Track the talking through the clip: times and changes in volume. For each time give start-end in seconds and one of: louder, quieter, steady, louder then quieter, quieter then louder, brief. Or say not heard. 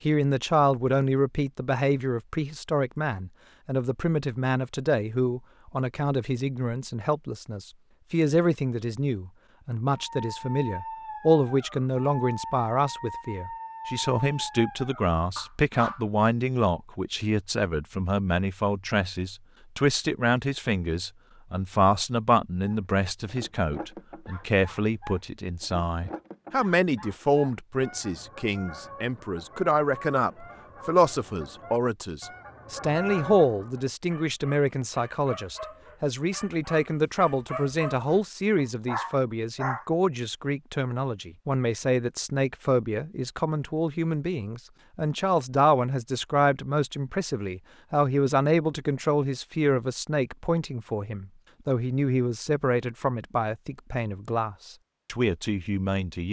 0.0-56.2 steady.